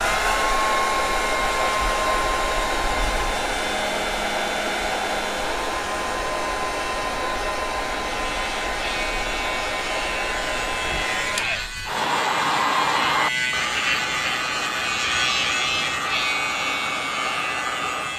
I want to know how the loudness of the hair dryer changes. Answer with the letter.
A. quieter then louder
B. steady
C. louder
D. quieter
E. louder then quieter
D.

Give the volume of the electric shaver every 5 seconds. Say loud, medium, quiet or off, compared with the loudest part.
off, medium, loud, loud.